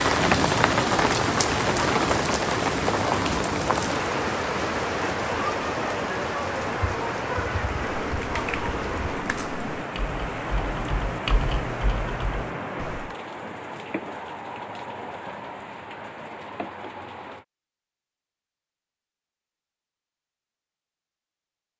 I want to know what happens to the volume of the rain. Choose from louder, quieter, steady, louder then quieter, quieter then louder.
quieter.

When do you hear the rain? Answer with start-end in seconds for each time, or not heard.
0.0-17.4.